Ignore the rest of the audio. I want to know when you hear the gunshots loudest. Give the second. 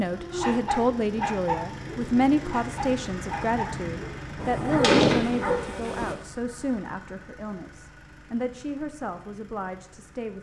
5 s.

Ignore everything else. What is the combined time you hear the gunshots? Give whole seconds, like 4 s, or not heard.
2 s.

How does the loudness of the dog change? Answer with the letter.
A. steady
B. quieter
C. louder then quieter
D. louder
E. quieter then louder
E.